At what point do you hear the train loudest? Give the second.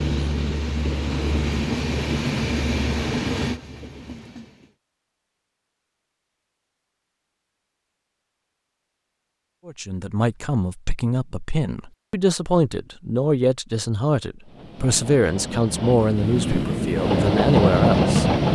18 s.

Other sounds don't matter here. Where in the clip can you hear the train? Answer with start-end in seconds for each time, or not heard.
0.0-4.8, 14.4-18.5.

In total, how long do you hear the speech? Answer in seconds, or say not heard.
9 s.